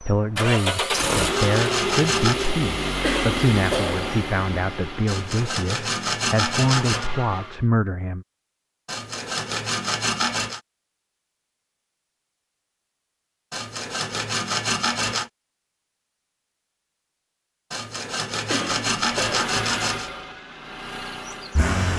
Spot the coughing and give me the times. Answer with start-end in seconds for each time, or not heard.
3.0-4.1, 18.4-19.4.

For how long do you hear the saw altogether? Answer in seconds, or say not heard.
10 s.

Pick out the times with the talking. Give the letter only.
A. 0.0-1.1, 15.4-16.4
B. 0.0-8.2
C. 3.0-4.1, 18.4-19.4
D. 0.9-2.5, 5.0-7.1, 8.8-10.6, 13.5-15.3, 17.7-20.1
B.